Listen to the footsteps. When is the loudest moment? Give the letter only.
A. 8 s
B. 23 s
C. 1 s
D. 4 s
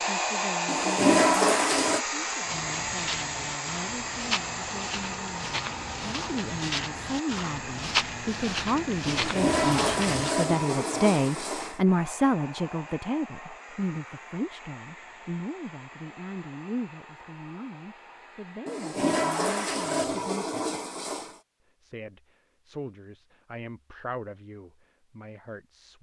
A.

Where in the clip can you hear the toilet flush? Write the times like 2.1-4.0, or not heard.
0.7-2.0, 9.1-11.8, 18.6-21.4.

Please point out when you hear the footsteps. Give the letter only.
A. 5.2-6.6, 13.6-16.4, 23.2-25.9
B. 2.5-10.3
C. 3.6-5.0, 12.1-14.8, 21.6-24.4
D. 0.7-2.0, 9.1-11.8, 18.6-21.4
B.